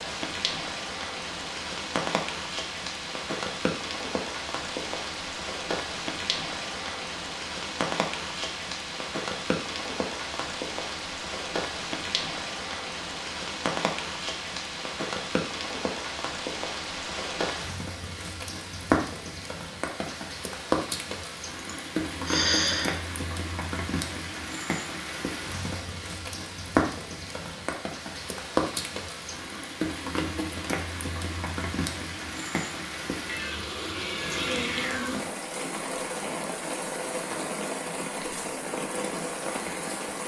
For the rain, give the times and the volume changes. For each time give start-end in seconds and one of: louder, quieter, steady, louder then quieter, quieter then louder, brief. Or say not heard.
0.0-40.2 steady.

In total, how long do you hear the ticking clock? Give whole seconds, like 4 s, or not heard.
not heard.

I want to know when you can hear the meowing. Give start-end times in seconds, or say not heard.
33.2-35.1.